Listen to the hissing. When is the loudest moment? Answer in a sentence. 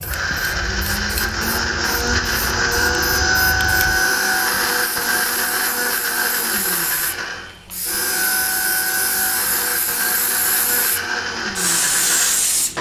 The loudest moment of the hissing is at 12 seconds.